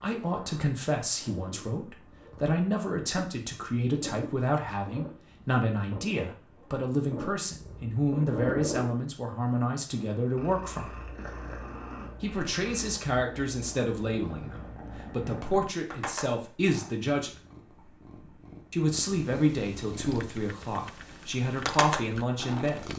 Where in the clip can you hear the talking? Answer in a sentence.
You can hear the talking from 0.0 to 10.9 s, from 12.2 to 17.4 s and from 18.7 to 22.9 s.